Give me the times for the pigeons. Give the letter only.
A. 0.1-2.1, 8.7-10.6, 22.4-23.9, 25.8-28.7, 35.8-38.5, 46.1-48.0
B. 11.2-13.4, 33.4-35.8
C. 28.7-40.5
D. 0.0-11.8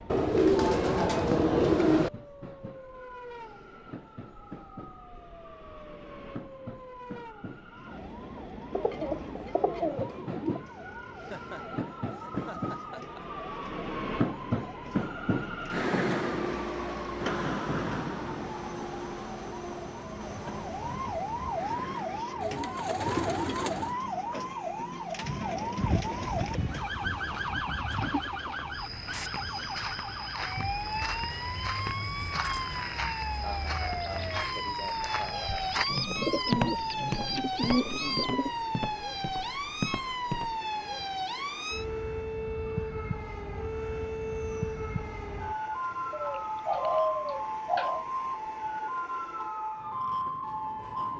A.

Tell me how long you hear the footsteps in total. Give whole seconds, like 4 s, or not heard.
12 s.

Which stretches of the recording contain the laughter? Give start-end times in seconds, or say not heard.
11.2-13.4, 33.4-35.8.